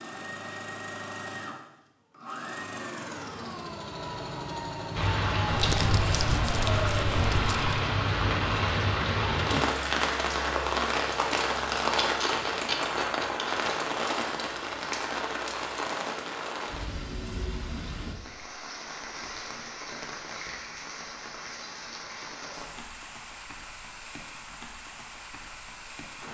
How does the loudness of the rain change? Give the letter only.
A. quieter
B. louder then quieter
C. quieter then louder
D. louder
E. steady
A.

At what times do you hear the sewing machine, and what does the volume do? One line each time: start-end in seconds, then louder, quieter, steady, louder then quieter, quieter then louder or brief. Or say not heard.
0.0-7.1 steady.